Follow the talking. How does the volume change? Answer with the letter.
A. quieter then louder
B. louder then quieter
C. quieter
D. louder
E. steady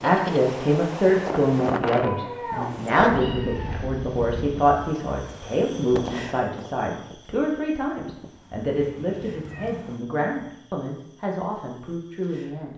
C.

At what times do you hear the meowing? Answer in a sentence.
You can hear the meowing from 1.9 to 3.9 s and from 8.8 to 9.9 s.